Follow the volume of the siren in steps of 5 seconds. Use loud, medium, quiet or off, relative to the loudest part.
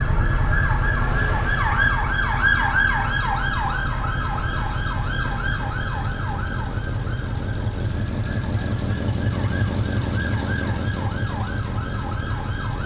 loud, medium, medium.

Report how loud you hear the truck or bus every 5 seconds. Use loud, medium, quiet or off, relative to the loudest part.
medium, loud, loud.